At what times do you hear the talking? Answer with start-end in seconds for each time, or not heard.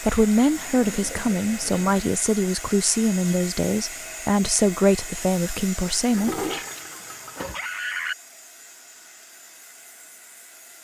0.0-6.5.